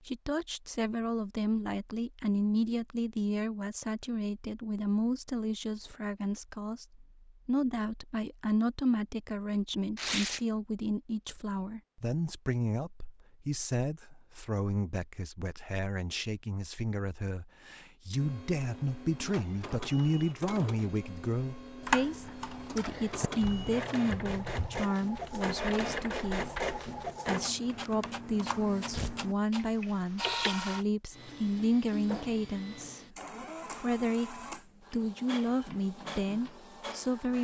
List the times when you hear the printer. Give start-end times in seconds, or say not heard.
18.1-37.3.